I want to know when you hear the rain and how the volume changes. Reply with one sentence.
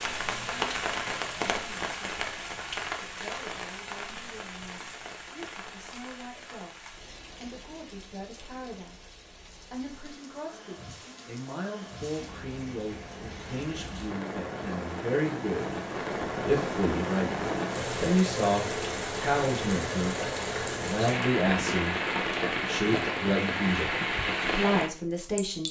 You can hear the rain from 0.0 to 25.6 s, getting quieter then louder.